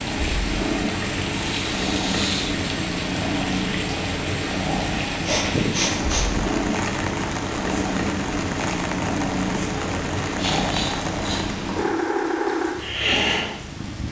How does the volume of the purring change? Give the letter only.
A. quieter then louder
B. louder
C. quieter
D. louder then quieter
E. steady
E.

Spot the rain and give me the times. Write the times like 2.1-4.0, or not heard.
0.0-14.0.